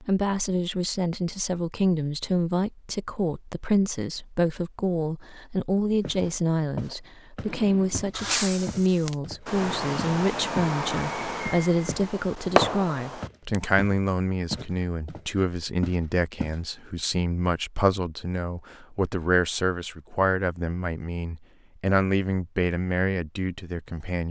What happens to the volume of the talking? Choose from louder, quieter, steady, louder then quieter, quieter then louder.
steady.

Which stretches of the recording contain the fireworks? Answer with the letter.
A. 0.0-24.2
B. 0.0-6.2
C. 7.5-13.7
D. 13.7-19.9
C.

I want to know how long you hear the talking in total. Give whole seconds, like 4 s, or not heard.
24 s.